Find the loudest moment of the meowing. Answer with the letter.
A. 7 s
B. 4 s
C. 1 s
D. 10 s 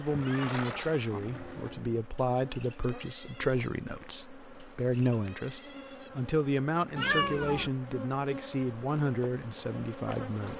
A.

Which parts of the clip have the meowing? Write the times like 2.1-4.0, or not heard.
0.1-0.9, 7.0-7.7.